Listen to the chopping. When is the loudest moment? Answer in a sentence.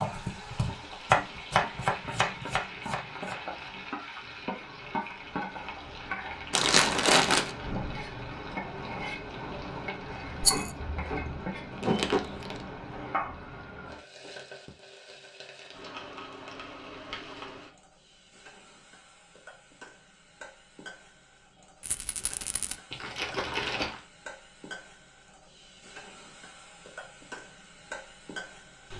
The volume of the chopping peaks at 1 second.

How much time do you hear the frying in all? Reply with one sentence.
The frying can be heard for 29 seconds in total.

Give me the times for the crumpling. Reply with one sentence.
You can hear the crumpling from 6.5 to 7.5 s, from 11.7 to 12.7 s and from 22.9 to 24.0 s.